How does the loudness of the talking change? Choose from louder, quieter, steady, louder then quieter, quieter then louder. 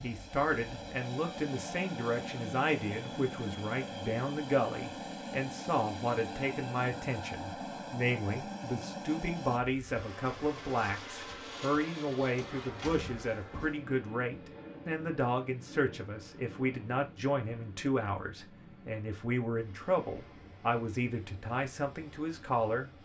steady.